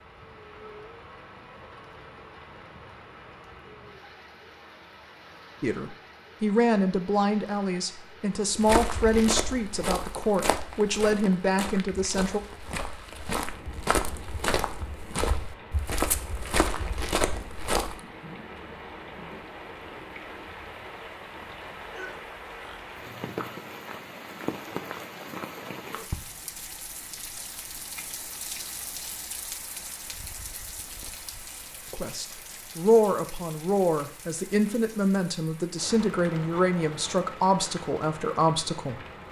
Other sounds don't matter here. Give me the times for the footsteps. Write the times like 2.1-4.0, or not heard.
8.5-18.0.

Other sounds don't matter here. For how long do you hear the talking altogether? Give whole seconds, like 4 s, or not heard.
14 s.